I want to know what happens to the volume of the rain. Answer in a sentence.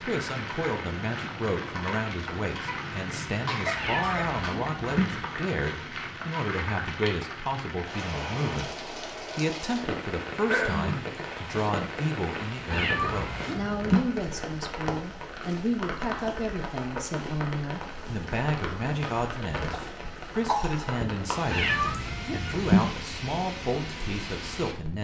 The volume of the rain stays about the same.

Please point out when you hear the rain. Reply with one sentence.
You can hear the rain from 0.0 to 24.9 s.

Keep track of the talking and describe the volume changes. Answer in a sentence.
The volume of the talking stays about the same.